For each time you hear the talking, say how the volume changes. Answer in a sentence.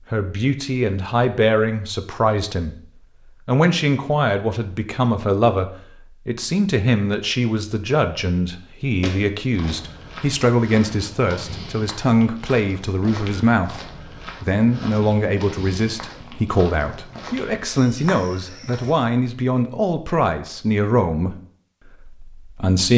You can hear the talking briefly from 0.1 to 2.8 s; from 3.5 to 21.4 s, at a steady volume; and briefly from 22.0 to 22.9 s.